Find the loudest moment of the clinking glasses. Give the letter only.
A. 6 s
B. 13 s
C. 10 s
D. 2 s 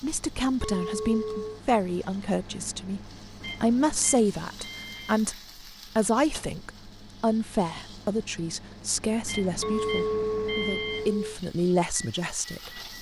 C.